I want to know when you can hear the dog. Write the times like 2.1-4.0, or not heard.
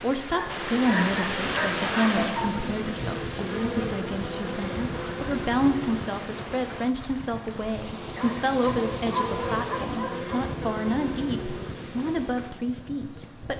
0.3-2.6, 8.2-10.3.